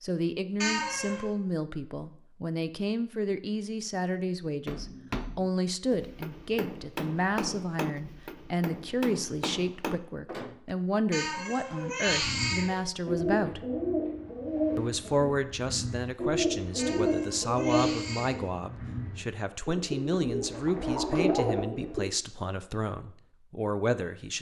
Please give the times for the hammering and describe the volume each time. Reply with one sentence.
You can hear the hammering from 4.7 to 10.8 s, at a steady volume.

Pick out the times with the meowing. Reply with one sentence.
The meowing can be heard from 0.6 to 1.3 s, from 11.1 to 12.8 s and from 16.8 to 18.4 s.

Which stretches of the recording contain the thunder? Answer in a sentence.
The thunder can't be heard in this clip.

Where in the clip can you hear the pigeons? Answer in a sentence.
The pigeons can be heard from 12.1 to 22.0 s.